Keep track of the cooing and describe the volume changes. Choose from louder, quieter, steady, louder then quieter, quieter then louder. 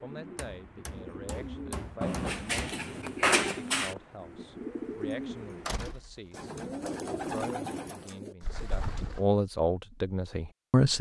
louder.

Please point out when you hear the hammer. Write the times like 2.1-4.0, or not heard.
0.3-2.8.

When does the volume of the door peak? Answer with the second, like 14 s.
3 s.